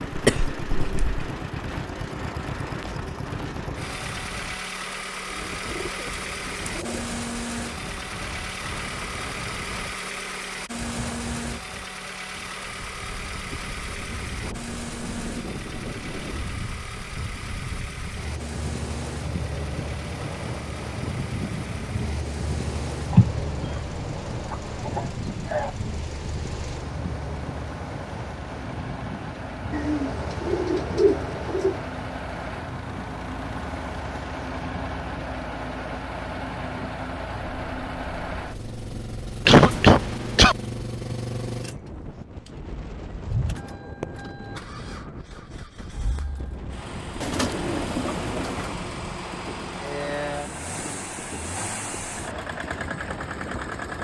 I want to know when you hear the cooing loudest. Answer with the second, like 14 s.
31 s.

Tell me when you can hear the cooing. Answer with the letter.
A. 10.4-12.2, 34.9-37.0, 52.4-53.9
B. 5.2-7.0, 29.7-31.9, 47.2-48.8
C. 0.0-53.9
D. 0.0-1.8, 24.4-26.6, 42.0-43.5
B.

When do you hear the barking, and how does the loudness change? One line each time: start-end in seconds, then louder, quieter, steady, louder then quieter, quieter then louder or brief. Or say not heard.
not heard.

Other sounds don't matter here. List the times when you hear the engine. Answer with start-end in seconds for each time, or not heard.
0.0-53.9.